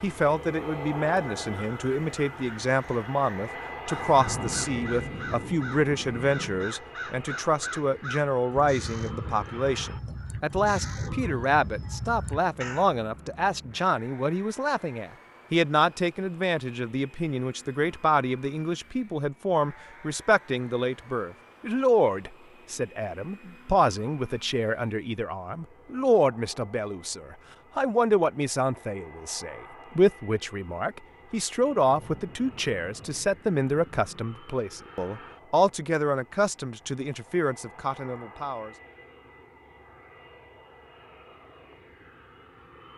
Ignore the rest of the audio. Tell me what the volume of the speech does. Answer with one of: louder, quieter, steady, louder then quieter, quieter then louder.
steady.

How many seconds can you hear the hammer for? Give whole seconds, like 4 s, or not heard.
not heard.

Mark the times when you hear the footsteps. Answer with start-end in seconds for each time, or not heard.
not heard.